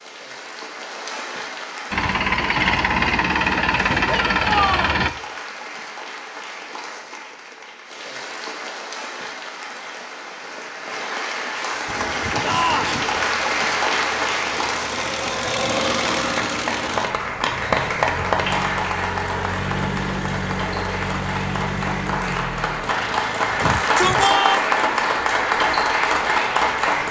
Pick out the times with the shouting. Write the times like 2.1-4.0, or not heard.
4.0-5.0, 12.4-13.1, 23.6-24.6.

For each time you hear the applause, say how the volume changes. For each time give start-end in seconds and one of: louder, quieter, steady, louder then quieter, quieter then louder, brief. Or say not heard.
0.0-27.0 louder.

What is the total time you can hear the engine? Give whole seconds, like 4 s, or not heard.
15 s.